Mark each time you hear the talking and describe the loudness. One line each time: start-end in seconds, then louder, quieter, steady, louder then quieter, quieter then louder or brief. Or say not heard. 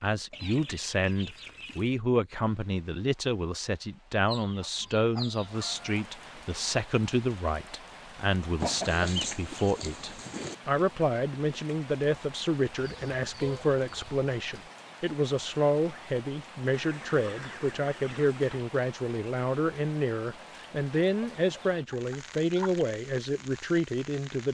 0.0-24.5 steady.